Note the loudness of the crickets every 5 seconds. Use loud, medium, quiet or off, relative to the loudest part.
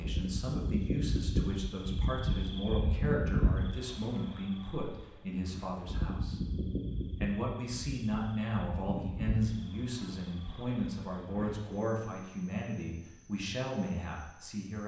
loud, medium, quiet.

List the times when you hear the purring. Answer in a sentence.
You can't hear the purring here.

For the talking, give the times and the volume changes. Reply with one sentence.
You can hear the talking from 0.0 to 14.8 s, at a steady volume.